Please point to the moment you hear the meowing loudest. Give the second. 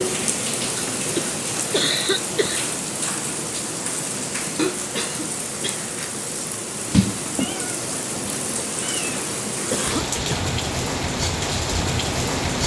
7 s.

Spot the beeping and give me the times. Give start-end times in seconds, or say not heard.
not heard.